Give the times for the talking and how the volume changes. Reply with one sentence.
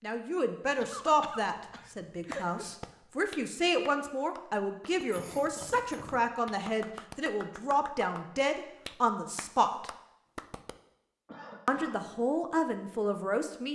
You can hear the talking from 0.0 to 9.9 s, at a steady volume; and briefly from 11.7 to 13.7 s.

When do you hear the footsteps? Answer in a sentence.
You can't hear the footsteps here.